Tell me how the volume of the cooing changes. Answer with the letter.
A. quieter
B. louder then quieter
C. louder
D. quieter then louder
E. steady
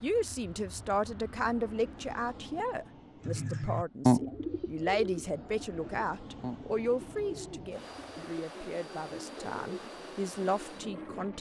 A.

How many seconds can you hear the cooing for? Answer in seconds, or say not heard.
8 s.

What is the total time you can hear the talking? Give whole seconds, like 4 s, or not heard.
11 s.